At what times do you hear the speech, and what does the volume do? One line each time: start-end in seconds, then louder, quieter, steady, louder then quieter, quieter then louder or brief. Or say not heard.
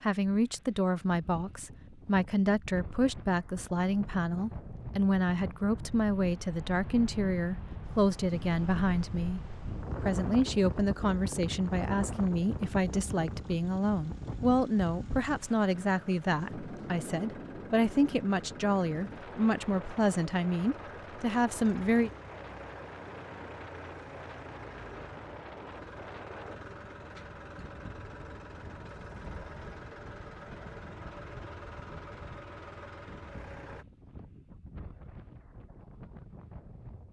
0.0-9.4 steady
10.0-22.1 steady.